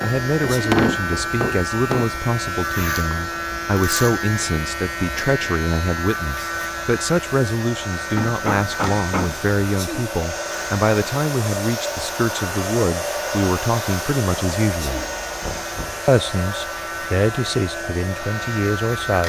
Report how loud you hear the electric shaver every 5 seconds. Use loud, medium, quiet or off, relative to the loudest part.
loud, loud, medium, medium.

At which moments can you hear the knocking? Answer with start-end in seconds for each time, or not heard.
0.5-2.1, 8.2-9.4, 15.4-16.1.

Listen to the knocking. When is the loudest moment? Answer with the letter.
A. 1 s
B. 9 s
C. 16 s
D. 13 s
A.